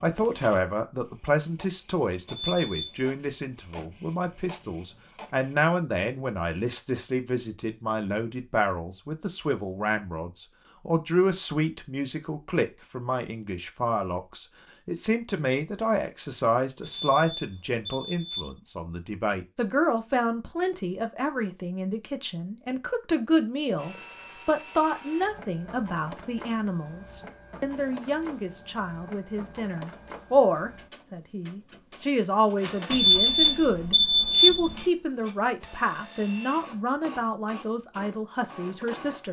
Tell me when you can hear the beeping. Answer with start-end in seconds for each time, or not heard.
2.2-3.1, 16.8-18.6, 32.9-34.9.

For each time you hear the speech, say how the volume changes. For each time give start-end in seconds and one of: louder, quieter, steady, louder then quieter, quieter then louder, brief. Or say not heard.
0.0-39.2 steady.